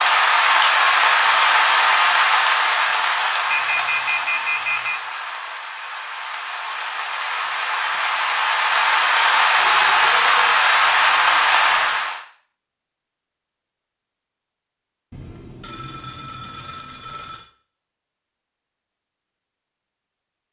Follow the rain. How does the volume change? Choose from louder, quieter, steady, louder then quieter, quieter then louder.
quieter then louder.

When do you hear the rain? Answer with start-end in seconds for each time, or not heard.
0.0-12.2.